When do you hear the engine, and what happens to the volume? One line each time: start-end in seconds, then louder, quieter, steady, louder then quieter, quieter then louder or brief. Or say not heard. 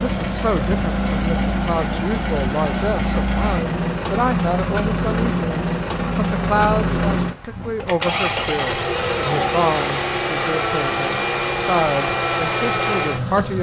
0.0-13.5 steady.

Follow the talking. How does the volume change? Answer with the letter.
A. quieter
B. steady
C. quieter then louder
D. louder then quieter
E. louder
B.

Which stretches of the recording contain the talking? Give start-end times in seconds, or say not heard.
0.0-13.5.